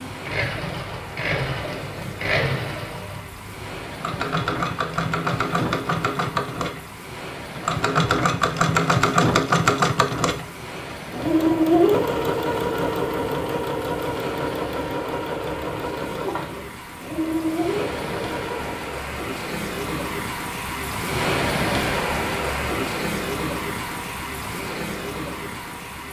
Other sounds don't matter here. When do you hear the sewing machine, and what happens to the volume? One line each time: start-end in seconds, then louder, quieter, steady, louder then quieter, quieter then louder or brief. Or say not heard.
0.0-18.9 louder then quieter.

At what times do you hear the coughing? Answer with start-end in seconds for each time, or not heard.
not heard.